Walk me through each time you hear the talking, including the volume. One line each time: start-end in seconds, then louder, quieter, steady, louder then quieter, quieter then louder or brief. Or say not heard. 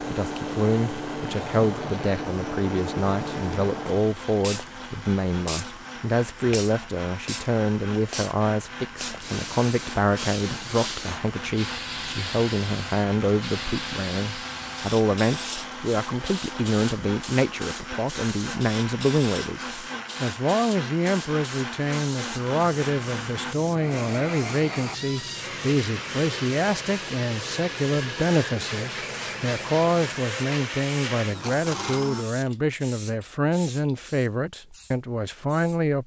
0.0-36.0 steady.